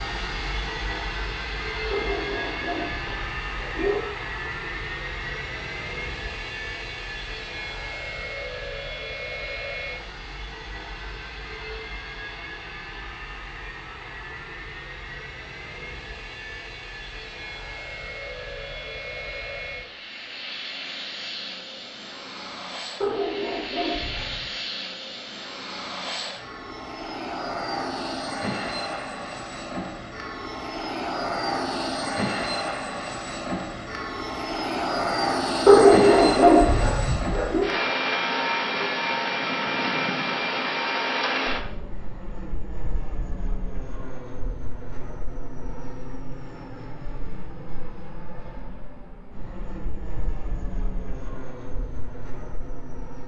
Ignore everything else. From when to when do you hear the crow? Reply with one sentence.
The crow can't be heard in this clip.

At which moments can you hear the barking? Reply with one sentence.
The barking can be heard from 1.9 to 4.0 s, from 23.0 to 24.5 s and from 35.6 to 37.6 s.